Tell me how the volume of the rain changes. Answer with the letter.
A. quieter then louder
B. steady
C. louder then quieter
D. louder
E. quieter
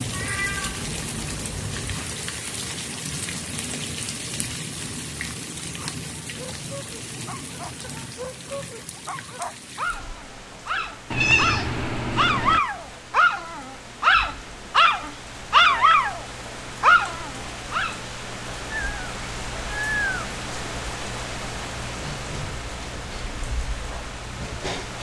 A.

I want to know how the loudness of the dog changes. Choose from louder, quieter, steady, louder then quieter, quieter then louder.
louder.